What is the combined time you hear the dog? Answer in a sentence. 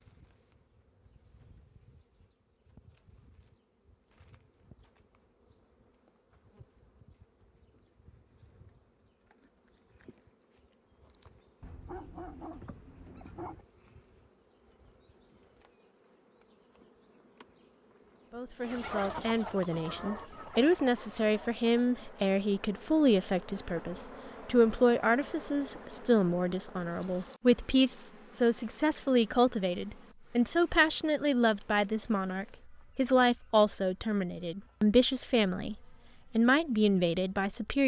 The dog can be heard for 2 seconds in total.